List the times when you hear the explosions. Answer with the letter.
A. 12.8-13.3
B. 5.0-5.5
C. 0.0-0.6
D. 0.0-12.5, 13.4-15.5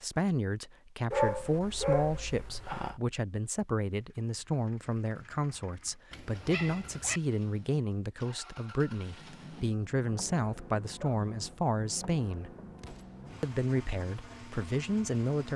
A.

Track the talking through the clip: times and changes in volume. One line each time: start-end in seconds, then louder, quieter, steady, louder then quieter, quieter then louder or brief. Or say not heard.
0.0-12.5 steady
13.4-15.5 brief.